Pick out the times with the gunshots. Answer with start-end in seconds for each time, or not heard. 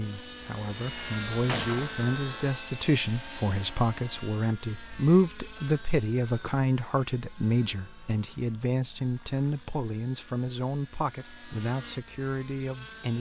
1.4-2.5.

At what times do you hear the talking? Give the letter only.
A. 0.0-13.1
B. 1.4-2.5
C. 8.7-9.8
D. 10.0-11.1
A.